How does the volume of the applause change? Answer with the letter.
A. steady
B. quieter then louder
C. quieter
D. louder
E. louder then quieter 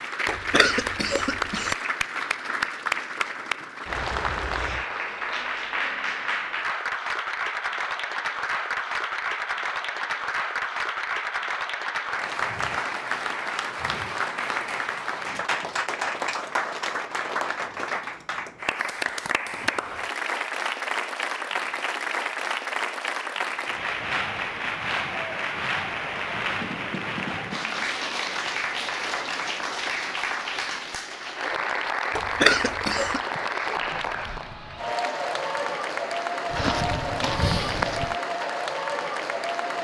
A.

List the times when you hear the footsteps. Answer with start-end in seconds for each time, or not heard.
36.5-38.1.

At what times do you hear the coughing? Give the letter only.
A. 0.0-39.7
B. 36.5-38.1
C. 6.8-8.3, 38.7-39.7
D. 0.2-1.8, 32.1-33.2
D.